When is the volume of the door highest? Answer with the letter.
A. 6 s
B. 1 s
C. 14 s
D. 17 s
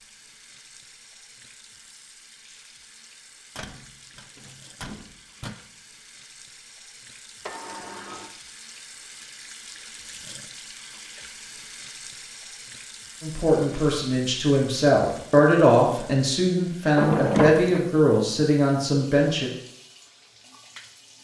D.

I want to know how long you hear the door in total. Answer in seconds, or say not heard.
4 s.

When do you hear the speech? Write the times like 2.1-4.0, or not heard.
13.2-19.5.